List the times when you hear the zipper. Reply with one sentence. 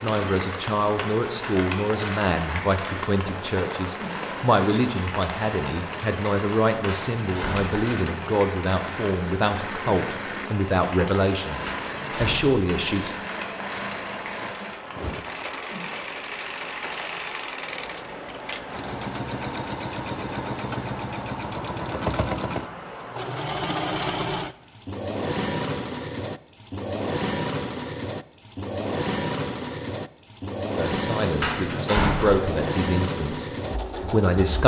You can't hear the zipper here.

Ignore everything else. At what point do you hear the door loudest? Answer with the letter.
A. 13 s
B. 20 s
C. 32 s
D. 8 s
C.